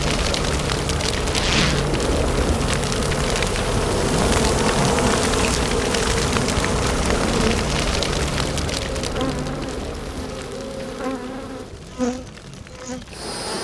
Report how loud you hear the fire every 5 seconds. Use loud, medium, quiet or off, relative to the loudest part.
loud, loud, quiet.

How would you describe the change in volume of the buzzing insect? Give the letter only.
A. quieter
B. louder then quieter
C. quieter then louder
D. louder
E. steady
B.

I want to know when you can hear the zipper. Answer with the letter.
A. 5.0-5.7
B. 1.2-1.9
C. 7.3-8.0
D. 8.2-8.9
B.